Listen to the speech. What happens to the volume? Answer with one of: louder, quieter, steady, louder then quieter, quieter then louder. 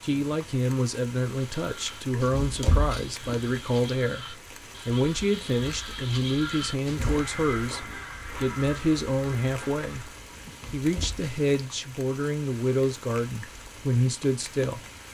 steady.